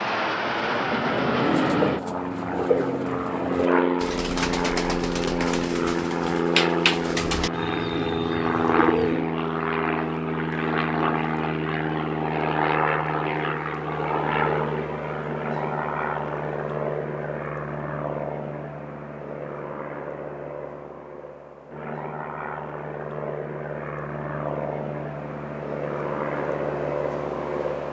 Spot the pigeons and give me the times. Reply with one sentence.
You can hear the pigeons from 0.7 to 9.2 s.